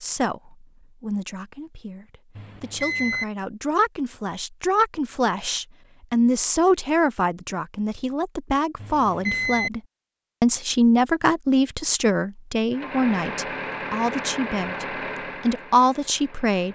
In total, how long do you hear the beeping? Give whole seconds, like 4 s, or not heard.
2 s.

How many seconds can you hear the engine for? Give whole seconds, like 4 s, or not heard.
4 s.